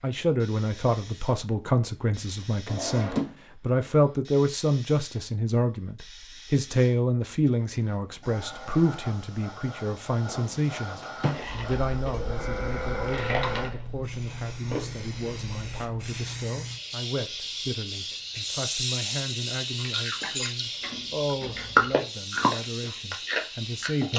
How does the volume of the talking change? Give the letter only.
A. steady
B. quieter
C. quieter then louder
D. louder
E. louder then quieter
B.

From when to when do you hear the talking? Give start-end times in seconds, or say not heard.
0.0-24.1.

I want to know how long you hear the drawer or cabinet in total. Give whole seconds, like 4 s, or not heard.
3 s.